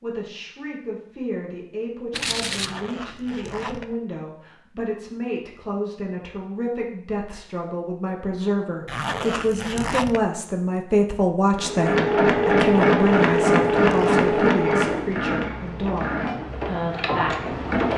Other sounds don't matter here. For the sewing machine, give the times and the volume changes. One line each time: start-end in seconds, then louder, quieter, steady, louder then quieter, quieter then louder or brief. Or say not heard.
11.6-17.9 quieter.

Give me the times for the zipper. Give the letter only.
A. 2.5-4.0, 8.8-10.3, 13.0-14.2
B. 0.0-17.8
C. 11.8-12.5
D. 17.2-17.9
A.